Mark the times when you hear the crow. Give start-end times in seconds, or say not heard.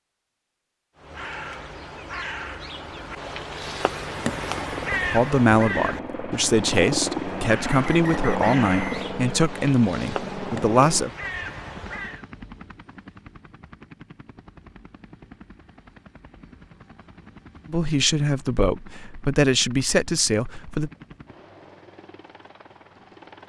0.9-12.2.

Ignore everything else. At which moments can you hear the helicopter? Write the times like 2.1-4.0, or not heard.
4.2-23.4.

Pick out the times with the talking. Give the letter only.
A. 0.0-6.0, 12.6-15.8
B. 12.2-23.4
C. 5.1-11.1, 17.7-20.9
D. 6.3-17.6
C.